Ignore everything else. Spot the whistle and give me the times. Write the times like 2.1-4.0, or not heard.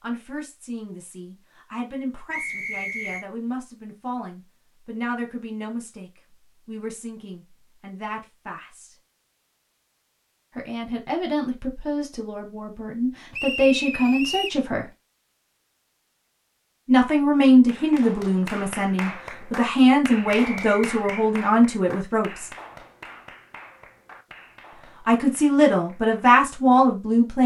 2.3-3.2, 13.3-14.6, 20.4-21.2.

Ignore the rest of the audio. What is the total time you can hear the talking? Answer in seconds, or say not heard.
21 s.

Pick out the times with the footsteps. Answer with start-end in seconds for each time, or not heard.
not heard.